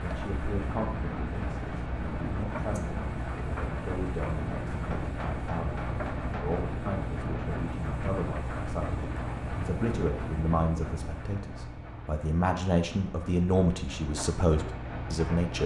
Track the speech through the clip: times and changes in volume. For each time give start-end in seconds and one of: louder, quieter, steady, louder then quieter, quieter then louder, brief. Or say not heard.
0.0-15.6 louder.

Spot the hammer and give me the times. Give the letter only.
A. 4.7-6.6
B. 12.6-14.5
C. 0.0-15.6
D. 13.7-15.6
A.